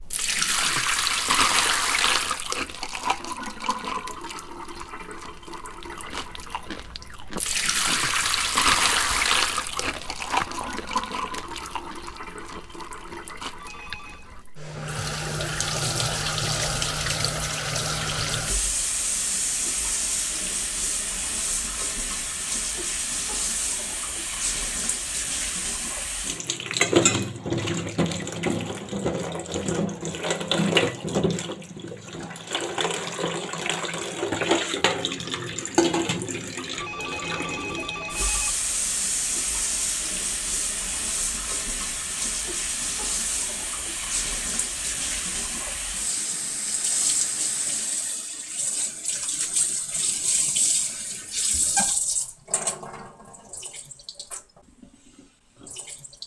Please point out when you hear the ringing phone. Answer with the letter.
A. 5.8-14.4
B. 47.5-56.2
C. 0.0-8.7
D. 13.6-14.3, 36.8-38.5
D.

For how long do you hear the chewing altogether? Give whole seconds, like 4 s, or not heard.
9 s.